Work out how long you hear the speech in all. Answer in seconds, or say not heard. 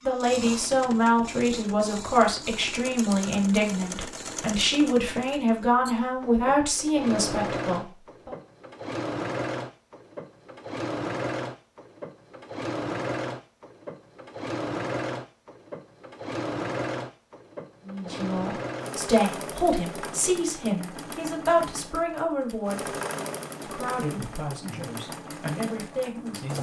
16 s.